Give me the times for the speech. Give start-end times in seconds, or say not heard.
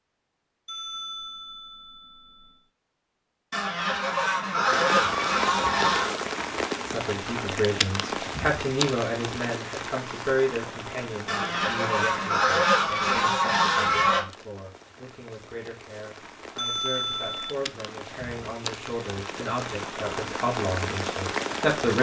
6.8-21.9.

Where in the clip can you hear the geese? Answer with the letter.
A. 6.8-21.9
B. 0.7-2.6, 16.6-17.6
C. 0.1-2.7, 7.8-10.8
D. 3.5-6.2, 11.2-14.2
D.